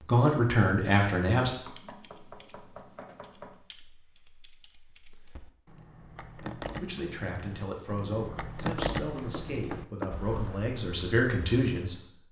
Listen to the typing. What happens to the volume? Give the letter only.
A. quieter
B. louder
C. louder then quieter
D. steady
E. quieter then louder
C.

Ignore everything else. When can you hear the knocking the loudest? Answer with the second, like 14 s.
10 s.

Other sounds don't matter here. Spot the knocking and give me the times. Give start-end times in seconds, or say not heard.
1.6-3.6, 8.8-10.2.